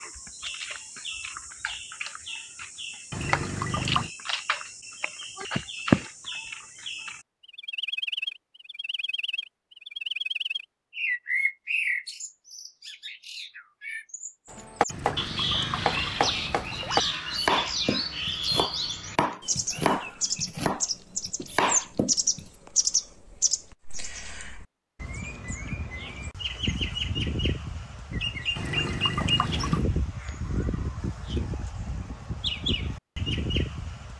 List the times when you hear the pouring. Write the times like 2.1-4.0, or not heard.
3.1-4.1, 14.8-17.2, 28.6-29.9.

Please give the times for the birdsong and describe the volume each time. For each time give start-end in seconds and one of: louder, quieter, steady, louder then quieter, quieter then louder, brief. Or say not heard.
0.0-34.1 steady.